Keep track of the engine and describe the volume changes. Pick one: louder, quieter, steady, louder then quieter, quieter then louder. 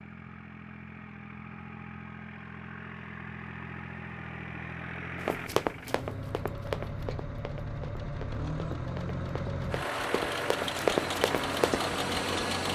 louder.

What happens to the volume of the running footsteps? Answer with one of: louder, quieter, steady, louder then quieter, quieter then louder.
quieter then louder.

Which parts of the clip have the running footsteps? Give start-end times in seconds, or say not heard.
5.2-11.8.